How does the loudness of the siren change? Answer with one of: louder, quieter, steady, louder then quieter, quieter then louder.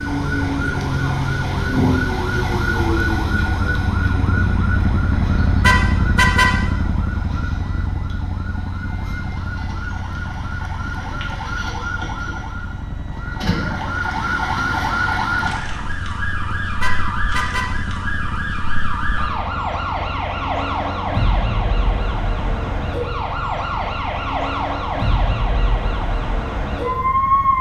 quieter then louder.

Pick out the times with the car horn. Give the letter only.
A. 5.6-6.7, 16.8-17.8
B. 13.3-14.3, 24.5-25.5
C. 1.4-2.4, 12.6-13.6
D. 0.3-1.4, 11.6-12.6
A.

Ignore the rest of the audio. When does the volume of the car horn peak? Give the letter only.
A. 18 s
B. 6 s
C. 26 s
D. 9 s
B.